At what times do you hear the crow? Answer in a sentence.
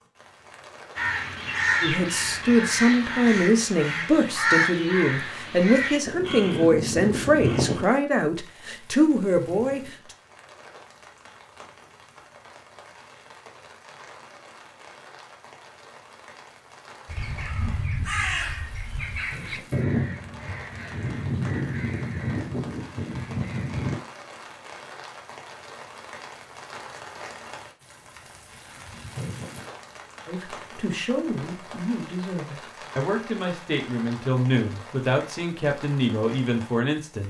You can hear the crow from 0.9 to 7.8 s and from 17.1 to 24.0 s.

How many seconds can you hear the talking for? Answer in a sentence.
The talking can be heard for 15 seconds in total.